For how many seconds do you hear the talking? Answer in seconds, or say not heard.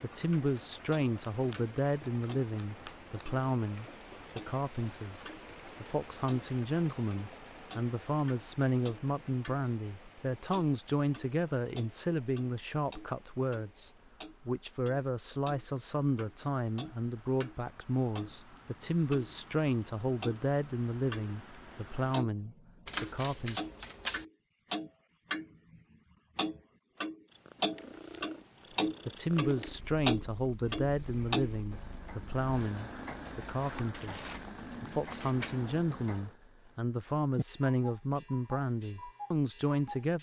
35 s.